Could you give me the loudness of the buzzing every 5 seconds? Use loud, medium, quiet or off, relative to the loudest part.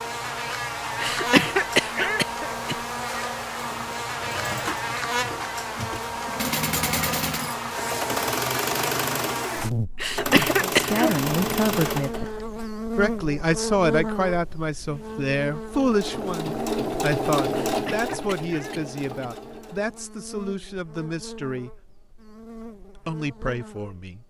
loud, loud, loud, medium, quiet.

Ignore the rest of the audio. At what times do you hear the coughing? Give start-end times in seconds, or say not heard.
1.0-2.8, 9.9-11.1, 17.6-19.3.